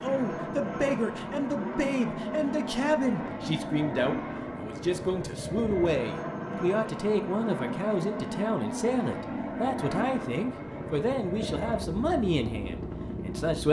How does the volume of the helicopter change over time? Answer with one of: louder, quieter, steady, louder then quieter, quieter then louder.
steady.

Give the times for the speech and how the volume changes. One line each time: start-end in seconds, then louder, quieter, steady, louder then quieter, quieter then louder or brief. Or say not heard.
0.0-13.6 steady.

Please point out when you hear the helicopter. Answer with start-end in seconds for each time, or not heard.
0.0-13.6.